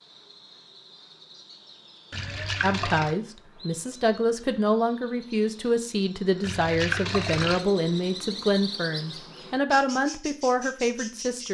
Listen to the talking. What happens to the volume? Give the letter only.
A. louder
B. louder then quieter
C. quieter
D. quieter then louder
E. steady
E.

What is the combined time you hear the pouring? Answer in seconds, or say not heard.
2 s.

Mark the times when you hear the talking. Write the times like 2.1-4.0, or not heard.
2.6-11.4.